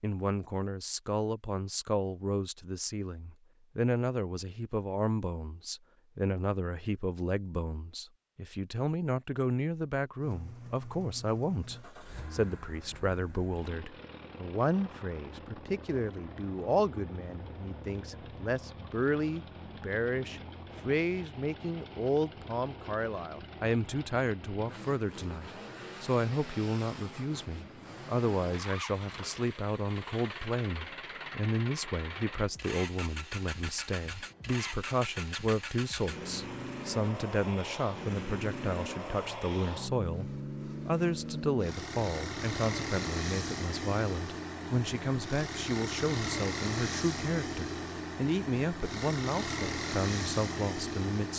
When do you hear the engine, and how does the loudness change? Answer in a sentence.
You can hear the engine from 10.2 to 51.3 s, getting louder.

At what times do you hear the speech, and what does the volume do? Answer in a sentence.
The speech can be heard from 0.0 to 51.3 s, at a steady volume.